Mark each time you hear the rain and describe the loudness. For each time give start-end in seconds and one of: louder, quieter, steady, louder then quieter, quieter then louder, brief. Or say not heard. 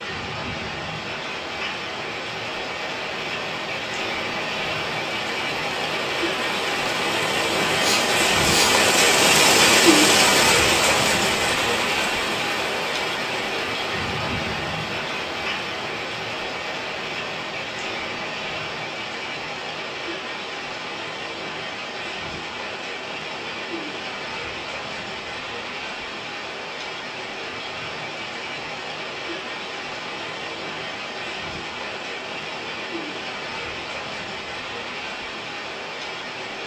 0.0-36.6 louder then quieter.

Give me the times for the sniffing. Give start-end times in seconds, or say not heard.
7.8-8.8.